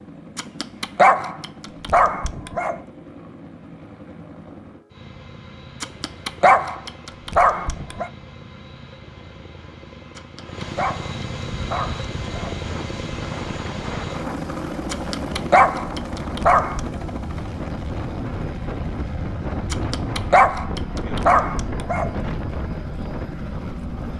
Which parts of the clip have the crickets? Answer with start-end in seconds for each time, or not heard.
not heard.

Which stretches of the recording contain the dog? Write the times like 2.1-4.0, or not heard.
0.3-2.8, 5.8-8.1, 10.2-12.6, 14.9-16.9, 19.7-22.1.